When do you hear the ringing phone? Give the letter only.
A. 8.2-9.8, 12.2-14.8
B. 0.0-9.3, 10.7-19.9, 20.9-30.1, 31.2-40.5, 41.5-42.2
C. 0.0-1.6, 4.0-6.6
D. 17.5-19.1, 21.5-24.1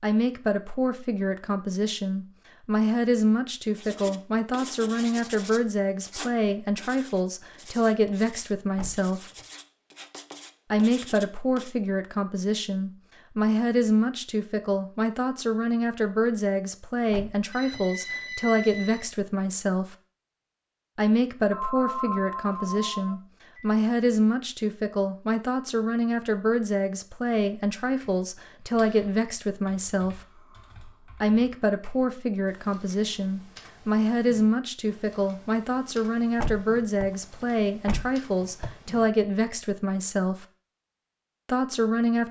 D.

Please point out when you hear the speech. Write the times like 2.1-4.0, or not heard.
0.0-9.3, 10.7-19.9, 20.9-30.1, 31.2-40.5, 41.5-42.2.